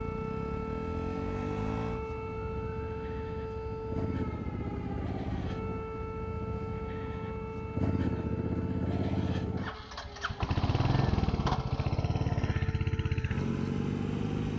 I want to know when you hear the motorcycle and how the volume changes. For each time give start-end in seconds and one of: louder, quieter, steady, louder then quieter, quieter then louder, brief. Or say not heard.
0.0-14.5 louder.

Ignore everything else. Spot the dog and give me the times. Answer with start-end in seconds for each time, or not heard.
not heard.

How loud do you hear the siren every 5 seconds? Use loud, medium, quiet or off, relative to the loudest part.
loud, loud, medium.